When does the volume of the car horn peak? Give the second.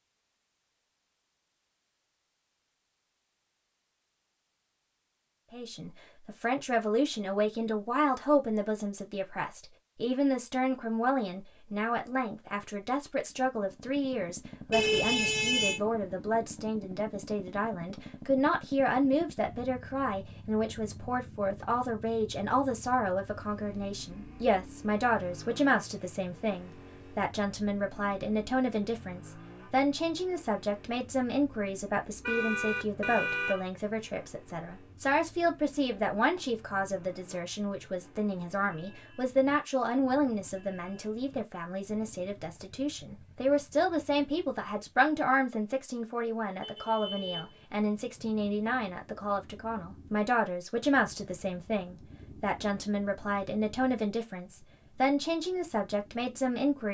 15 s.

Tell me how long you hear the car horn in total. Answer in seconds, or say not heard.
4 s.